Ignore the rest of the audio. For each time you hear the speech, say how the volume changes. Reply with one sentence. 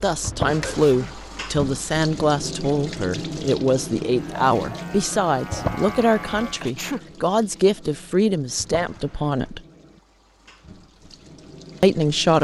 The speech can be heard from 0.0 to 9.6 s, at a steady volume; and briefly from 11.8 to 12.3 s.